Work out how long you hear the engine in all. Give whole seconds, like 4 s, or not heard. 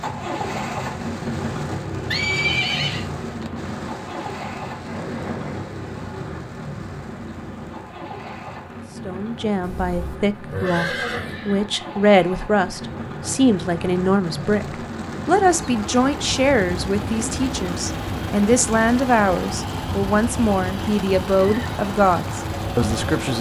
23 s.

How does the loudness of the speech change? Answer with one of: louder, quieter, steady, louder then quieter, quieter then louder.
steady.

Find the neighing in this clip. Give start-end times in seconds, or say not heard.
2.0-3.0, 9.6-11.7, 21.4-21.8.